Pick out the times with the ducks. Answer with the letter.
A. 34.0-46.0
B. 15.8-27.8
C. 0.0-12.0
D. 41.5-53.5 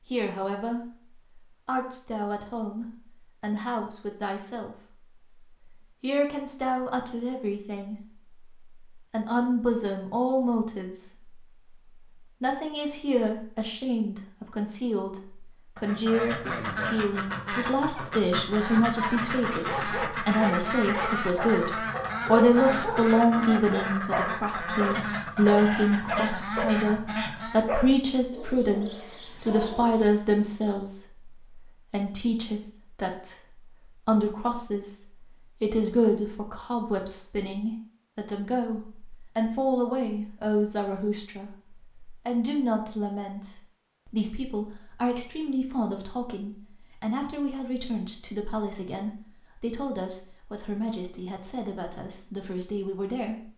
B.